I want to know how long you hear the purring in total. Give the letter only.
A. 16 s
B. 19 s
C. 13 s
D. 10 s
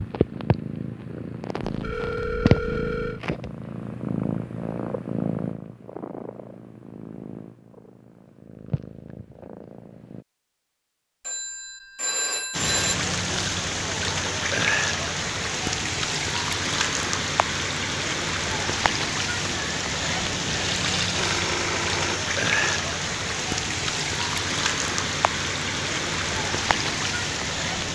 D.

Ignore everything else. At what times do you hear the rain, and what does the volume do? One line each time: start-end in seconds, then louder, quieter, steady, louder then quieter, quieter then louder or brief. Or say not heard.
12.5-27.8 steady.